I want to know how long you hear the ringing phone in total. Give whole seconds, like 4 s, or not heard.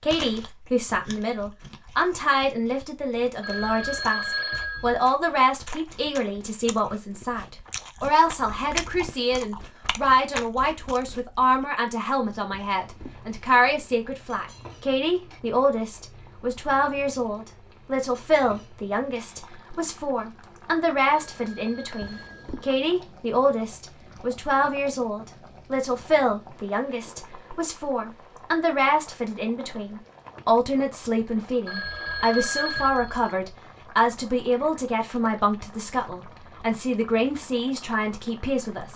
5 s.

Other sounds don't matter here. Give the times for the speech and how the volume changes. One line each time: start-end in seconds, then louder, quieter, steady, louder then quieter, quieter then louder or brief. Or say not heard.
0.0-38.9 steady.